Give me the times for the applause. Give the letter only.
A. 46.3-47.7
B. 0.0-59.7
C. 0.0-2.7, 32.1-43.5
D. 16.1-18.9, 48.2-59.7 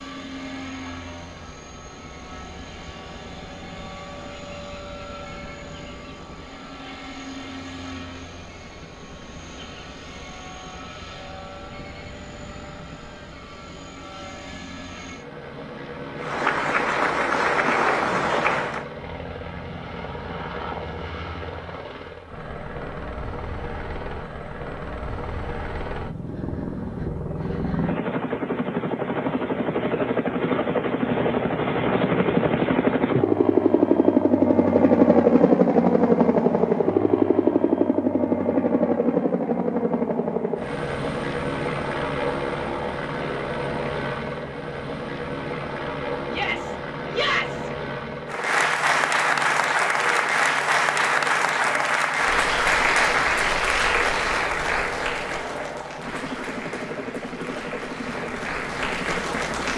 D.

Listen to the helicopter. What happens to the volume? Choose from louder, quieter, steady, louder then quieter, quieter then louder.
louder then quieter.